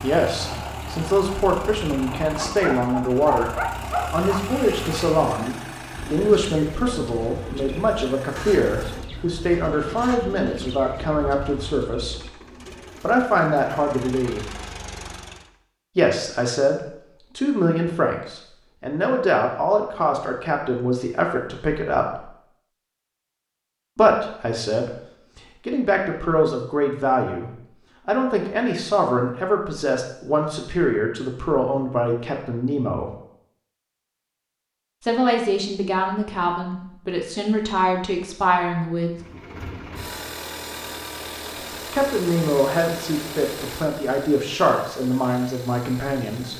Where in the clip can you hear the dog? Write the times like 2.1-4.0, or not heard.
2.4-4.5.